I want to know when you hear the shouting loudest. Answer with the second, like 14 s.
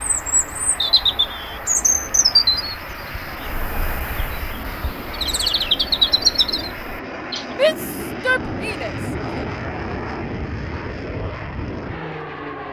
8 s.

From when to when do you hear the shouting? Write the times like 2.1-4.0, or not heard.
7.5-9.4.